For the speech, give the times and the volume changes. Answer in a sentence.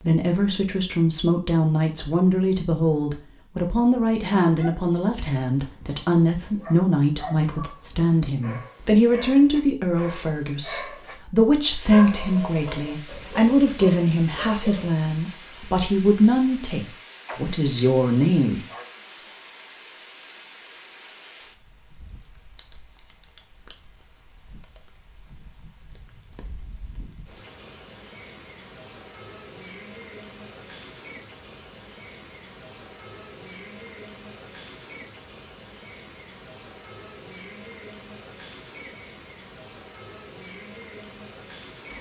The speech can be heard from 0.0 to 18.6 s, at a steady volume.